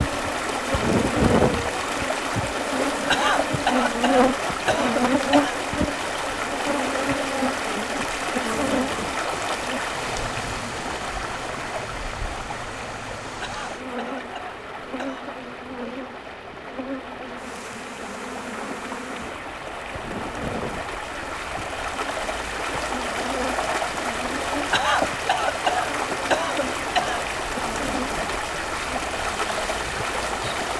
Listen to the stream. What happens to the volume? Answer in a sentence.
The loudness of the stream goes down, then up.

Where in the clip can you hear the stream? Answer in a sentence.
You can hear the stream from 0.0 to 30.7 s.